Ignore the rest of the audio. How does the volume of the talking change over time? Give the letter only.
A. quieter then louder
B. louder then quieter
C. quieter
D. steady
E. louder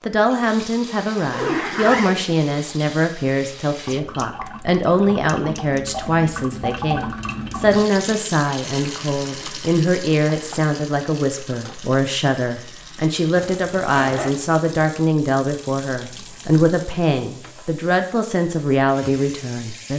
D.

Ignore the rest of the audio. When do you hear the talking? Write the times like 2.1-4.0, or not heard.
0.0-19.9.